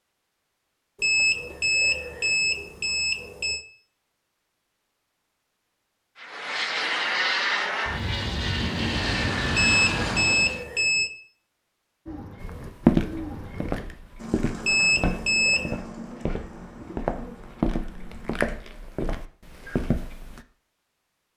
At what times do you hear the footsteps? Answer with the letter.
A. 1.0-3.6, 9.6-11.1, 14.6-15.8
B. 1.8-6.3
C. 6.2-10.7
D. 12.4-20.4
D.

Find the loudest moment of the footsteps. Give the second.
13 s.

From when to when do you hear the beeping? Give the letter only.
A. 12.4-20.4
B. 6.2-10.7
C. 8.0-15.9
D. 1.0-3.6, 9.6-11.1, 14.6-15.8
D.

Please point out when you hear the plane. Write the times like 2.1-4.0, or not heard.
6.2-10.7.